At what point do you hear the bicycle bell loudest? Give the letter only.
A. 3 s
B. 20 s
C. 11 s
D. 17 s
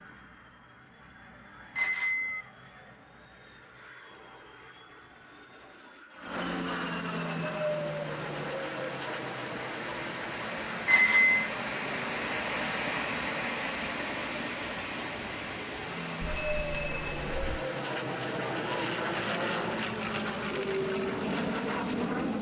C.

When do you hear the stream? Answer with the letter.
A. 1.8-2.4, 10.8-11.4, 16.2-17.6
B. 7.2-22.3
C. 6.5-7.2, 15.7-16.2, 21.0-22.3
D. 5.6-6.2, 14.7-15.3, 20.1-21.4
B.